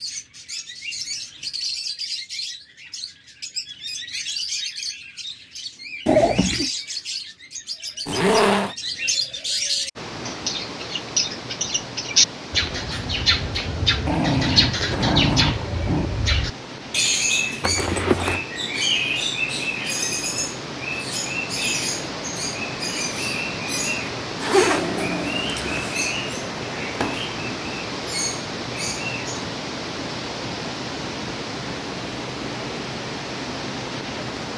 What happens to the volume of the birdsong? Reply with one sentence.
The volume of the birdsong goes up, then down.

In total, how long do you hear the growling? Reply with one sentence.
The growling can be heard for 4 seconds in total.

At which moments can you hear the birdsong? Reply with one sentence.
You can hear the birdsong from 0.0 to 29.4 s.